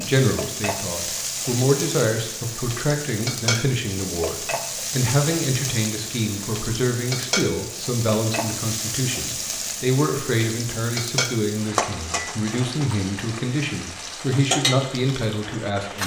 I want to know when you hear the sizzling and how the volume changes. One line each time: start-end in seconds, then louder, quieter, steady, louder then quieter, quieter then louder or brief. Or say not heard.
0.0-16.0 steady.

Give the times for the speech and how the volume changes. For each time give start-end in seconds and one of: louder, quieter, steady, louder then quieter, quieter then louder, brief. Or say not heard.
0.0-16.0 steady.